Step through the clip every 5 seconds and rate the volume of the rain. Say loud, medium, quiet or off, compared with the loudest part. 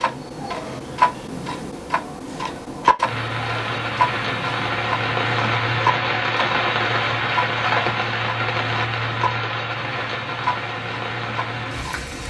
loud, loud, medium.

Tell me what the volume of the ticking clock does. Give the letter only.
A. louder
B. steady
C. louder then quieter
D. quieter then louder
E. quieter
E.